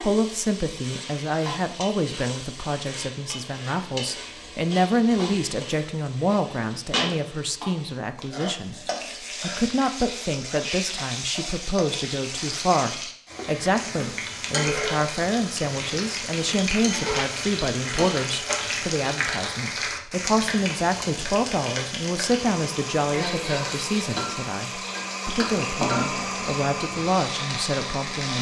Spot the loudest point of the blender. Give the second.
26 s.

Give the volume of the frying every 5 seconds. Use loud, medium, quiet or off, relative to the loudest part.
medium, medium, loud, loud, loud, loud.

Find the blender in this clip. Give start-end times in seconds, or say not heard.
22.4-28.3.